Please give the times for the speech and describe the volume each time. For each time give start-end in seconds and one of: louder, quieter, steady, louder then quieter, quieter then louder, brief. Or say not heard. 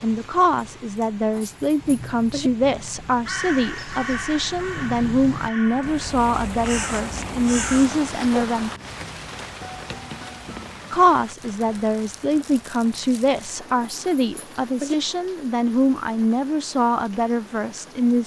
0.0-8.7 steady
10.9-18.2 steady.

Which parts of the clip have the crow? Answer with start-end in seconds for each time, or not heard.
3.2-8.4.